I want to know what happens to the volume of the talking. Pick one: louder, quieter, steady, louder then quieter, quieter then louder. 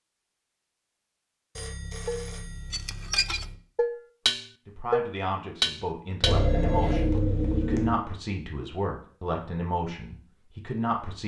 steady.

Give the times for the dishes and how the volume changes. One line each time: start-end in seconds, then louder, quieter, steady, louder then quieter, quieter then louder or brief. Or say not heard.
2.0-7.2 louder then quieter.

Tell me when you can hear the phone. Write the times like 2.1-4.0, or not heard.
1.6-3.5, 6.2-8.1.